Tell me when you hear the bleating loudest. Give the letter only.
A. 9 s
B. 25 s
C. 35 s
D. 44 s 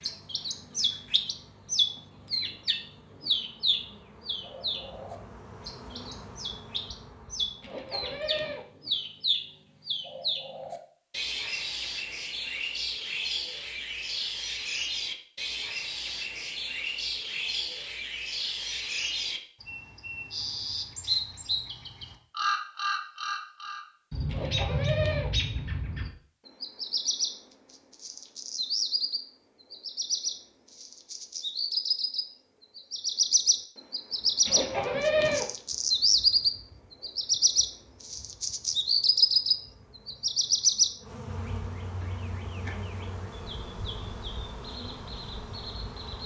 C.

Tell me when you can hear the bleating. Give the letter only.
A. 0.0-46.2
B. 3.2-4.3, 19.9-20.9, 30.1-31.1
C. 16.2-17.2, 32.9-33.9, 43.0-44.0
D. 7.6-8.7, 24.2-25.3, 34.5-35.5
D.